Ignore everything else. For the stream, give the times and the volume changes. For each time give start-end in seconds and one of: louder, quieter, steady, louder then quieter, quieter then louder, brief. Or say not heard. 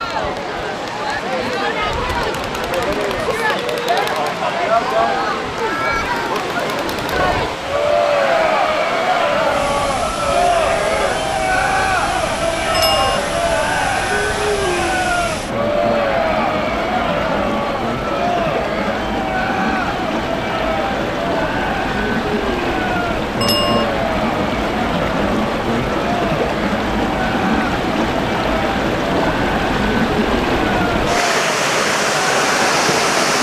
0.0-33.3 louder.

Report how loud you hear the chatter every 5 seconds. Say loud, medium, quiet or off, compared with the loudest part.
loud, loud, loud, loud, medium, medium, medium.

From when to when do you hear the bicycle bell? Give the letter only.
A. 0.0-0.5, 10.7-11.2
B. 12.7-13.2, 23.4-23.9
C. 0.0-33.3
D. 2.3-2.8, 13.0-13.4
B.